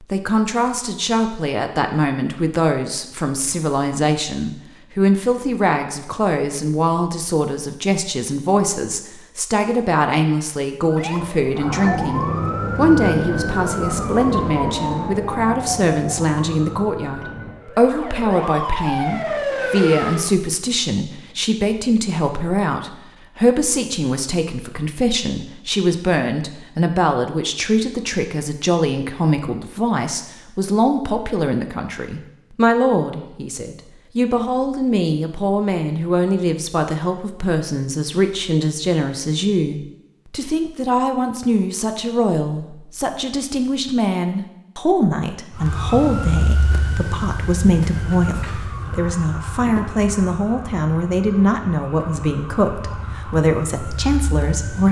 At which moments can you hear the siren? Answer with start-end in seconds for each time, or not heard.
10.9-20.4, 45.5-54.8.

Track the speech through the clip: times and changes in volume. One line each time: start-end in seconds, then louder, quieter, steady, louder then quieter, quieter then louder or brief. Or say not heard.
0.0-54.8 steady.